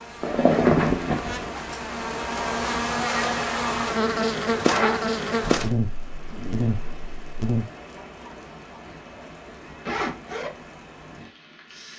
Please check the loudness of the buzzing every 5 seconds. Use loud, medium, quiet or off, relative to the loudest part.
loud, loud, off.